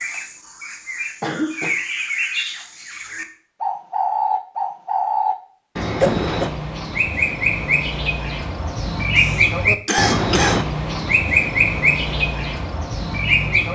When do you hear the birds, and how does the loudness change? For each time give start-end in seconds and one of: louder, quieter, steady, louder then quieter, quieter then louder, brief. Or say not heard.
0.0-13.6 louder.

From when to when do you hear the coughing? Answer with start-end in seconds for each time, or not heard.
1.2-1.8, 6.0-6.5, 9.2-10.6.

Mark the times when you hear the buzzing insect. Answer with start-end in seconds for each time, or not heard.
not heard.